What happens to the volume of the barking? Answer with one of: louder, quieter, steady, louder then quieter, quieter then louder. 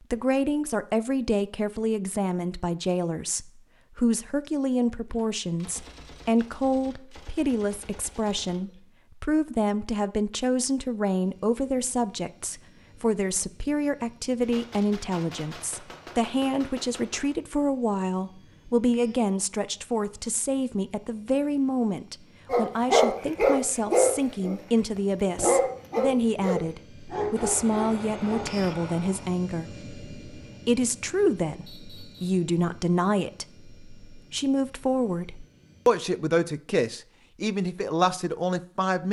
quieter.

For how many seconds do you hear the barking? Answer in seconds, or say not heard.
6 s.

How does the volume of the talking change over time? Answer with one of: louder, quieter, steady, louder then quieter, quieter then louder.
steady.